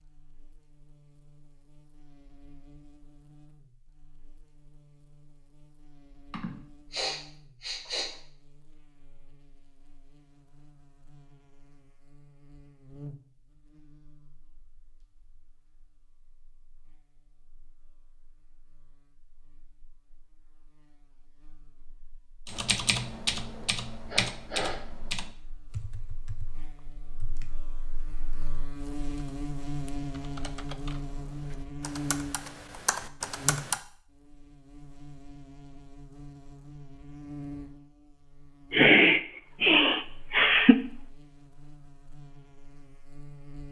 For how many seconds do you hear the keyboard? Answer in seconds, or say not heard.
11 s.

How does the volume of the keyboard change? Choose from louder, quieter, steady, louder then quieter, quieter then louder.
quieter then louder.